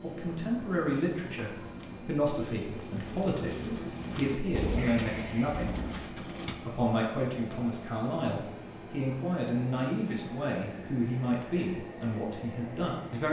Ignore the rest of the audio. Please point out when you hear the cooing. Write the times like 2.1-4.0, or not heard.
0.0-6.5.